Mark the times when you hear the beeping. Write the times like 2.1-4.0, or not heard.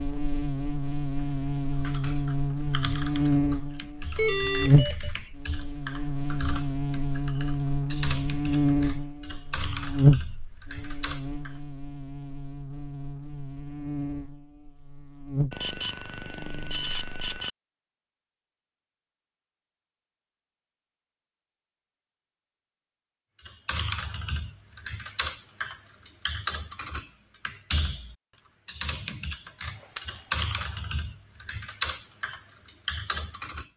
4.2-5.1, 15.5-17.5, 29.6-30.6.